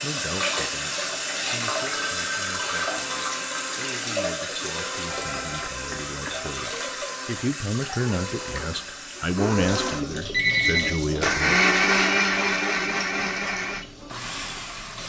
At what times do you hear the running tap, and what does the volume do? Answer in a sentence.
The running tap can be heard from 0.0 to 15.0 s, getting quieter.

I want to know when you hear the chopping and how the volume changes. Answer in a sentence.
You can't hear the chopping here.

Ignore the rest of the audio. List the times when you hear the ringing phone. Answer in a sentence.
You can hear the ringing phone from 1.9 to 2.9 s, from 5.0 to 6.8 s and from 10.3 to 11.0 s.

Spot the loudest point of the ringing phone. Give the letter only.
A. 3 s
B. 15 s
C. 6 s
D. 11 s
D.